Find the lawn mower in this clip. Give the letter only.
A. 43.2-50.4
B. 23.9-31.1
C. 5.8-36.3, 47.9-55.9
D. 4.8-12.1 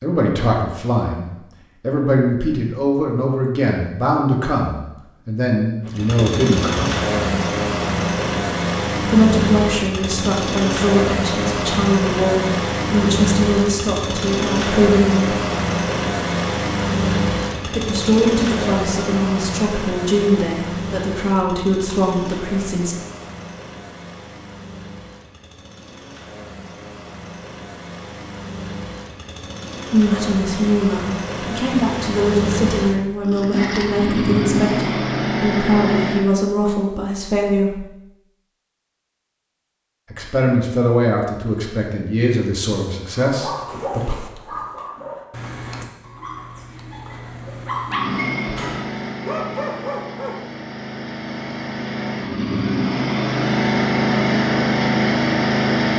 C.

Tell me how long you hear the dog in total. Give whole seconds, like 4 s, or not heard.
7 s.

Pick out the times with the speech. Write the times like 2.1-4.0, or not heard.
0.0-7.0, 9.0-15.3, 17.6-22.9, 29.9-37.9, 40.1-44.1.